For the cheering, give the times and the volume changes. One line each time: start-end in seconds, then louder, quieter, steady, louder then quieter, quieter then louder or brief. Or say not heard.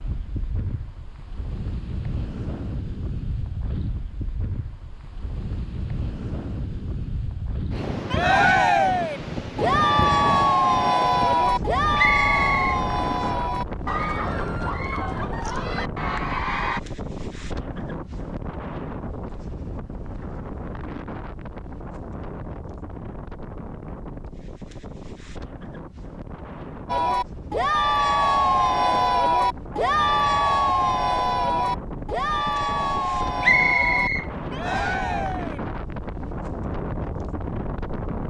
8.1-16.8 quieter
26.9-35.6 quieter.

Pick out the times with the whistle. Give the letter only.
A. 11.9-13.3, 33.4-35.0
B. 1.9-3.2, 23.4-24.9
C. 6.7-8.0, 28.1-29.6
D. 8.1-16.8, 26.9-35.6
A.